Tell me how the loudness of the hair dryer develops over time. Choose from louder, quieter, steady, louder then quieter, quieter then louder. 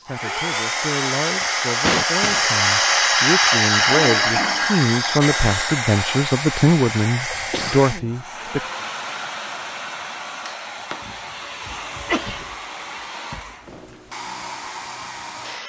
quieter.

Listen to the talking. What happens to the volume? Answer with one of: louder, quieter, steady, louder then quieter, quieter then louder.
louder.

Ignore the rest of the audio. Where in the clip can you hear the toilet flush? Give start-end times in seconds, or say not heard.
3.9-4.8.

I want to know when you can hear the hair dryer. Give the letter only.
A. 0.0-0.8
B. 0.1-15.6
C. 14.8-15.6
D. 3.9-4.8
B.